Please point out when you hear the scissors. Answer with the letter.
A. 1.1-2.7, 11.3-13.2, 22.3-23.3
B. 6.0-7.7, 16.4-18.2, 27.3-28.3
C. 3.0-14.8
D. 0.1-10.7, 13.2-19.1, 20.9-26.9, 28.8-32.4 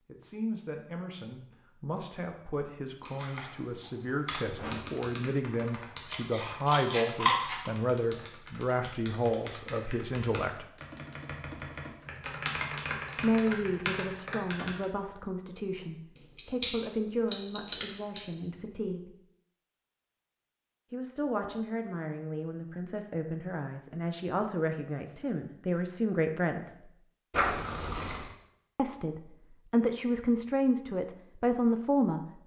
B.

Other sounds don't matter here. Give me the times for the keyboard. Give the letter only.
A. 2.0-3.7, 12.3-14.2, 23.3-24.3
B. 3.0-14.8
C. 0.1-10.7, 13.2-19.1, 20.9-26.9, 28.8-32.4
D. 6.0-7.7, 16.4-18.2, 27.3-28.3
B.